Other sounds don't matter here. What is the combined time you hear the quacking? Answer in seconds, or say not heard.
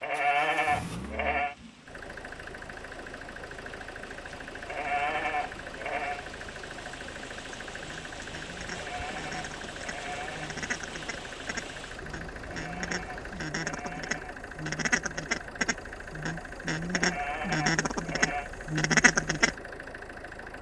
12 s.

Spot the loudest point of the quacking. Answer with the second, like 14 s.
19 s.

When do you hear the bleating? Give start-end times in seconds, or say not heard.
0.0-1.6, 4.7-6.2, 8.7-10.6, 12.5-14.3, 16.9-18.5.